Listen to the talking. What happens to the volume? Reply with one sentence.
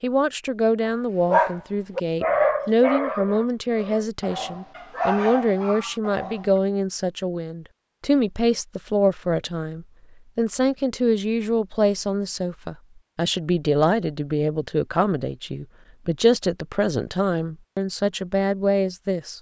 The loudness of the talking stays about the same.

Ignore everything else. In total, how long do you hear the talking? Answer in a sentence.
You can hear the talking for 19 seconds altogether.